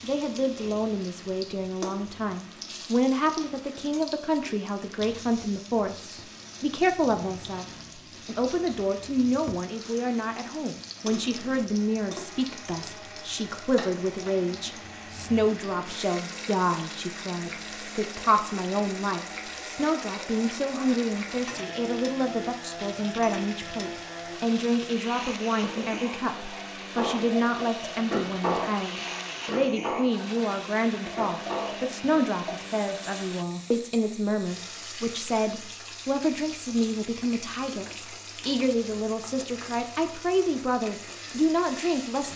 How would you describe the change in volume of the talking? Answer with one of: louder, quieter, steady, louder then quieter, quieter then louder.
steady.